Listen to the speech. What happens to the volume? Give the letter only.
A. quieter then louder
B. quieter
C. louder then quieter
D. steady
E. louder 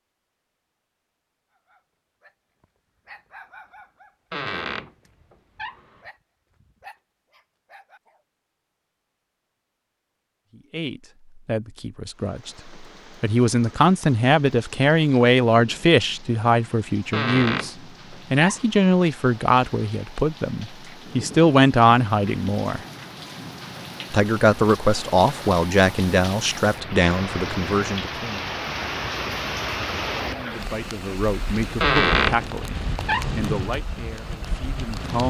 B.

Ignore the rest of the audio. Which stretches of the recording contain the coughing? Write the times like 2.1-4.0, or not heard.
not heard.